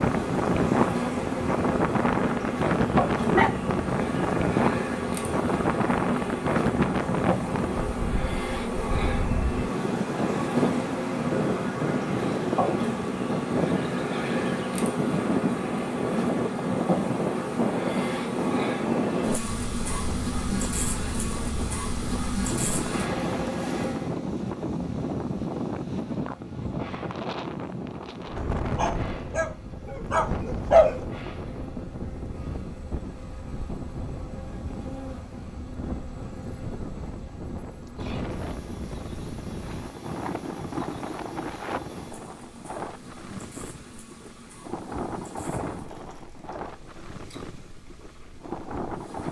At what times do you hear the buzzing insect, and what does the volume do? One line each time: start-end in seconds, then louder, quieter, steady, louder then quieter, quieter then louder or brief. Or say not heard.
0.0-49.2 quieter.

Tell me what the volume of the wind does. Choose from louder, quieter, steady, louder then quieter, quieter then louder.
quieter.